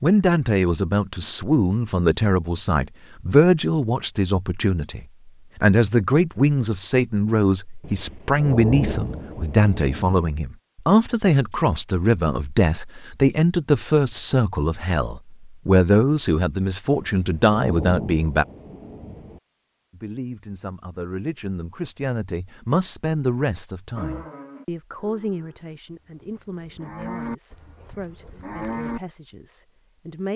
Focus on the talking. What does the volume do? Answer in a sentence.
The loudness of the talking goes down.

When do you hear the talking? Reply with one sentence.
The talking can be heard from 0.0 to 18.4 s and from 19.9 to 30.3 s.